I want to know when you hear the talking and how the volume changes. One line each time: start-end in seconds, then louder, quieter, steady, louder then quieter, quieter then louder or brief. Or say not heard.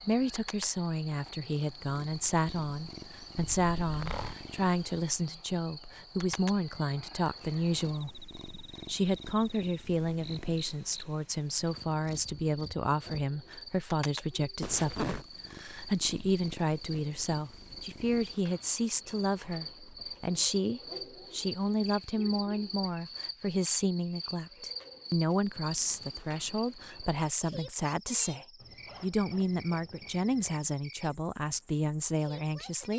0.1-32.9 steady.